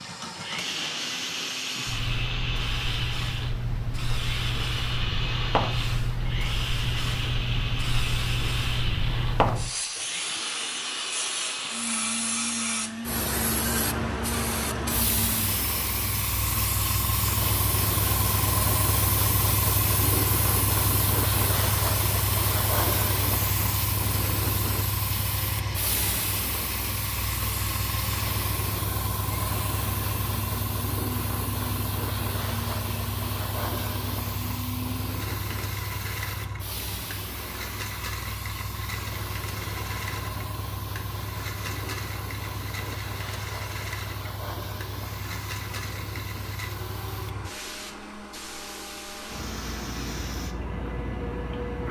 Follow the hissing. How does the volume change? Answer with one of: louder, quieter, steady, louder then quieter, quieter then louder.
quieter.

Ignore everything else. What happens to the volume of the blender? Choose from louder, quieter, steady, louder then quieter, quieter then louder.
quieter.